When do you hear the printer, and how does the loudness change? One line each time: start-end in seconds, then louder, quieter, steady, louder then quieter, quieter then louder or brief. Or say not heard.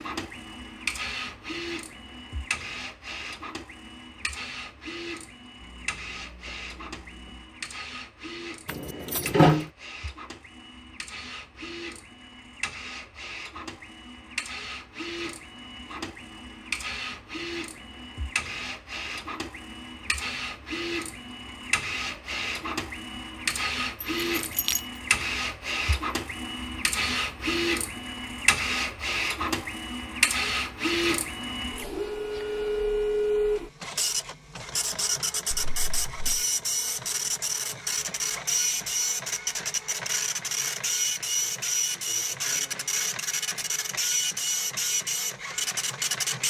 0.0-46.4 louder.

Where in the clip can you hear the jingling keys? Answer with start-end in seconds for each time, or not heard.
8.7-9.7, 24.0-24.8, 35.5-36.5.